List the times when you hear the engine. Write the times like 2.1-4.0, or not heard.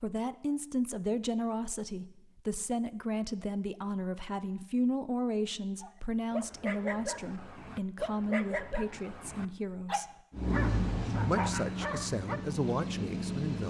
10.3-13.6.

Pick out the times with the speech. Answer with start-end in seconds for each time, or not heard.
0.0-10.1, 11.1-13.6.